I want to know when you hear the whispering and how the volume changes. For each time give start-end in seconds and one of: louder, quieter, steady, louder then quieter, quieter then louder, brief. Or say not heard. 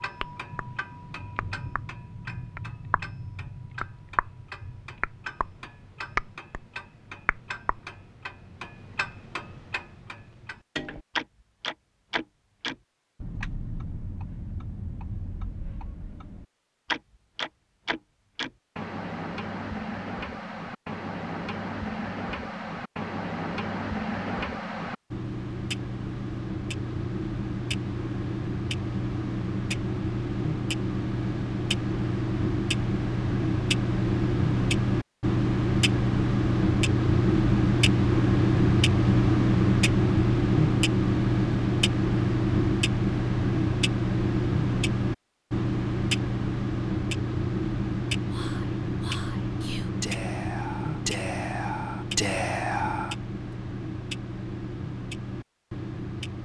48.3-53.1 louder.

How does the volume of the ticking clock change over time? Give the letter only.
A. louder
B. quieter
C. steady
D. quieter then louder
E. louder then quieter
E.